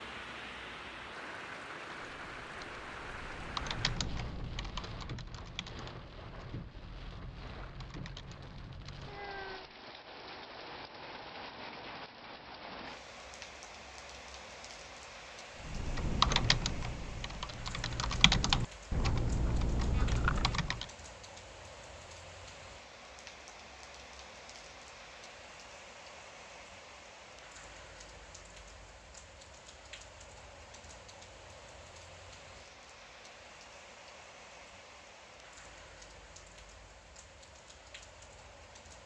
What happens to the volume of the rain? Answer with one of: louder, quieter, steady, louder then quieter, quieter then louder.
quieter.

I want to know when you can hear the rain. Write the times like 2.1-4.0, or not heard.
0.0-39.0.